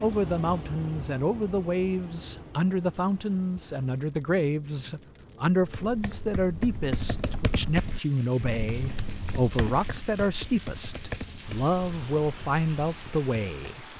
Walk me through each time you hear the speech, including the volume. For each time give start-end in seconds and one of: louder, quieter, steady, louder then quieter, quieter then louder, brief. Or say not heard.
0.0-13.8 steady.